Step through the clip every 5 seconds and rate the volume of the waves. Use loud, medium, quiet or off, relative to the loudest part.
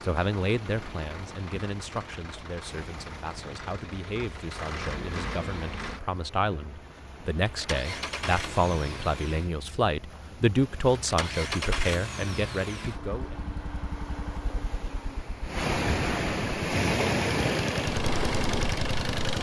quiet, quiet, quiet, loud.